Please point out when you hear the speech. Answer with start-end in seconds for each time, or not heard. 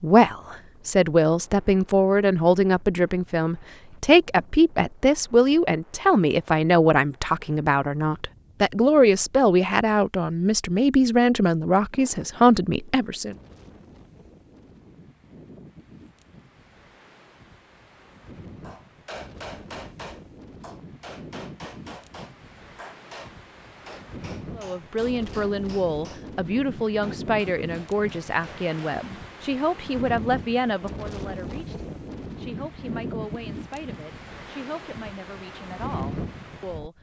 0.0-13.3, 24.6-36.9.